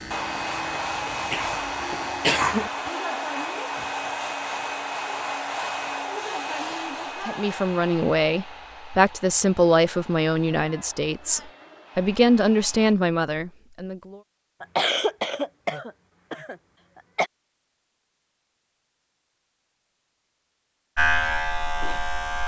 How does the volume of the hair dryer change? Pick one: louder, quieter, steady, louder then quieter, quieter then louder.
quieter.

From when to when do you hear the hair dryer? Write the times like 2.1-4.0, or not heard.
0.0-12.9.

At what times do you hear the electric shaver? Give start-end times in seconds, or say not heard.
0.0-2.4, 20.9-22.4.